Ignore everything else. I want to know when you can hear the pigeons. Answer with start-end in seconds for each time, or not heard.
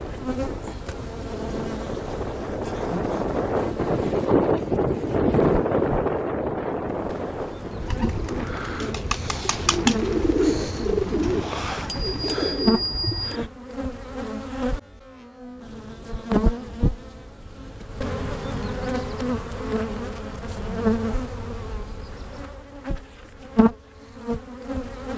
7.8-13.5.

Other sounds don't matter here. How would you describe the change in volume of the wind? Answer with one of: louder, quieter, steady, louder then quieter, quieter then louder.
louder then quieter.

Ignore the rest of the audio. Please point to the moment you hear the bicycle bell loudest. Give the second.
13 s.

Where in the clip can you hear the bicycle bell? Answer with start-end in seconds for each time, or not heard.
11.3-13.4.